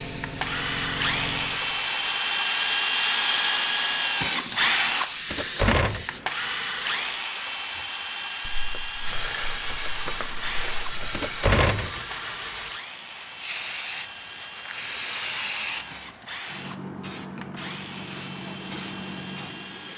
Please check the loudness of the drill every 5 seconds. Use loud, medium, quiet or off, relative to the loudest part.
loud, medium, quiet, quiet.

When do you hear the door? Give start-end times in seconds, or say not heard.
5.3-6.0, 11.1-12.0.